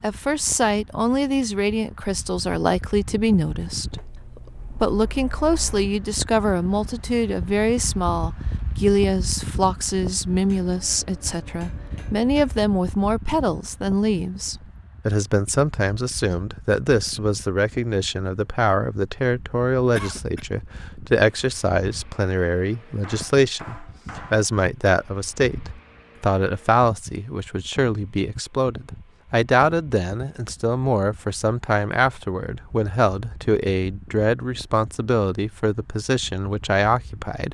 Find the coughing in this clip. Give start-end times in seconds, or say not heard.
19.9-20.4.